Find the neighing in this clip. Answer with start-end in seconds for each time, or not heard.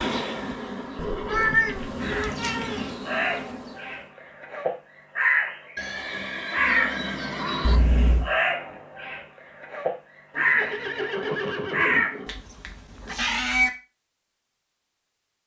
0.9-1.7, 5.8-7.8, 10.3-12.4.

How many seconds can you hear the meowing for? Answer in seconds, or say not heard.
4 s.